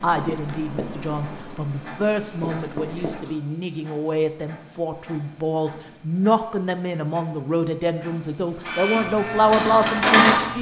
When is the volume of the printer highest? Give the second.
10 s.